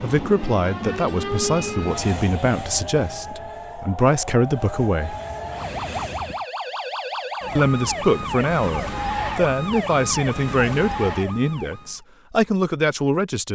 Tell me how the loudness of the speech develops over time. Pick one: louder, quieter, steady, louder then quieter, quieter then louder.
steady.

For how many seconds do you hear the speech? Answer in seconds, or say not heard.
11 s.